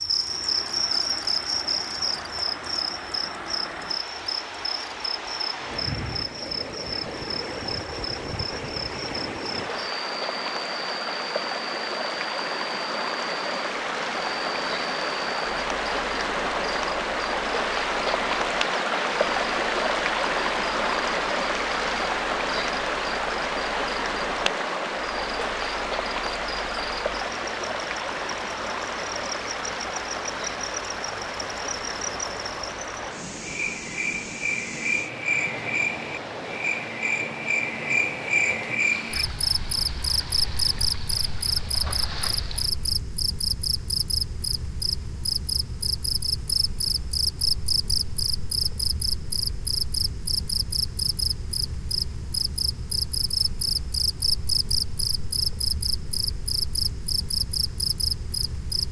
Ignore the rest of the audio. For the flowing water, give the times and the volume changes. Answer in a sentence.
The flowing water can be heard from 0.0 to 43.0 s, getting louder then quieter.